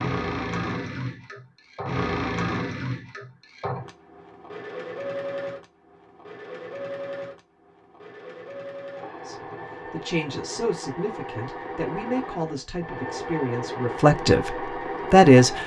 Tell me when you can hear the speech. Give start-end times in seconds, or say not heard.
9.2-15.6.